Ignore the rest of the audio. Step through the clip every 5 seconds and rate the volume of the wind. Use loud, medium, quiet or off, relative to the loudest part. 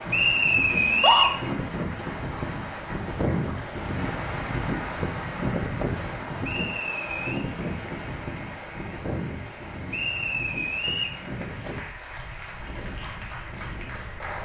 loud, loud, medium.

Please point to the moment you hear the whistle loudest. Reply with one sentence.
The volume of the whistle peaks at 1 second.